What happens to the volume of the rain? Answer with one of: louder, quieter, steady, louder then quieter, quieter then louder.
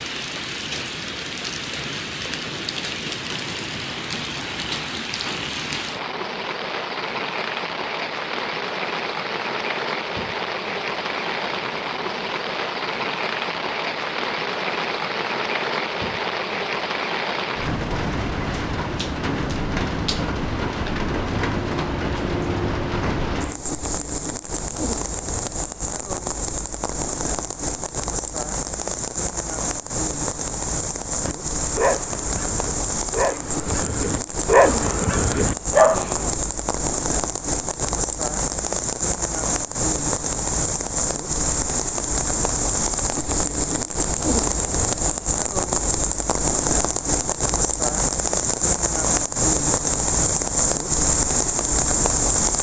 louder.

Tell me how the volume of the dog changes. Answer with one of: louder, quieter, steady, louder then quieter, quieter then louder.
quieter then louder.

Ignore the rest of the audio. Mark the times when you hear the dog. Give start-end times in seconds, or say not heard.
31.2-36.4.